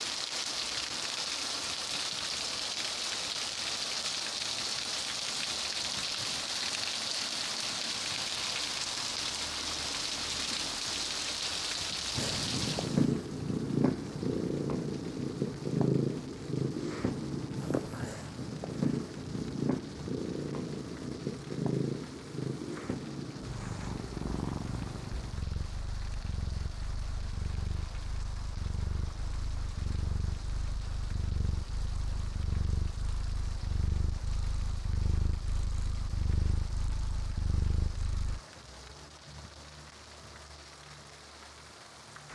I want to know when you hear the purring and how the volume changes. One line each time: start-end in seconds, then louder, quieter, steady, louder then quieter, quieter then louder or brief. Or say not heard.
12.2-38.4 quieter.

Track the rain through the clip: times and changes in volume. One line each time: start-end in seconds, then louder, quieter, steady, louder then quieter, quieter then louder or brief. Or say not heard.
0.0-42.3 quieter.